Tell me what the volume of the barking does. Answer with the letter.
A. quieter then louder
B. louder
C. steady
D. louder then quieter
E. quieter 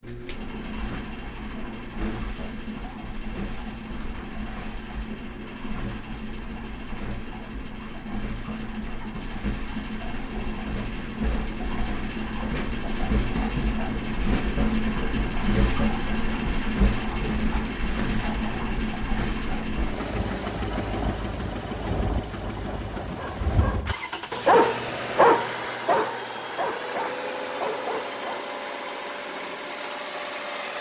D.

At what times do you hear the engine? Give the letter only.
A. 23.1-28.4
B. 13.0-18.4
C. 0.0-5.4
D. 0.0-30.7
D.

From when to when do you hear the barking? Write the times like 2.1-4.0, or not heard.
23.1-28.4.